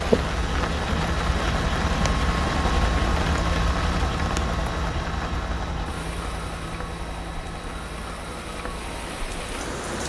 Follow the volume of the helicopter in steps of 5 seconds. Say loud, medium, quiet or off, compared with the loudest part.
loud, medium.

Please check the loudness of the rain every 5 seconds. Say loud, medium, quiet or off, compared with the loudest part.
loud, medium.